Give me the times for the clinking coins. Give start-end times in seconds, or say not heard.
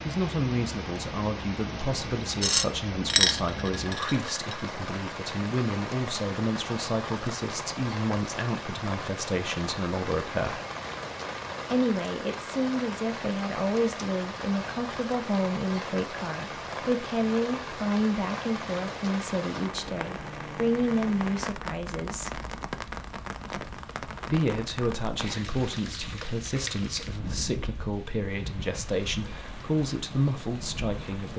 2.4-4.5.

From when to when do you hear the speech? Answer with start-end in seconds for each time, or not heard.
0.0-10.6, 11.7-22.4, 24.2-31.3.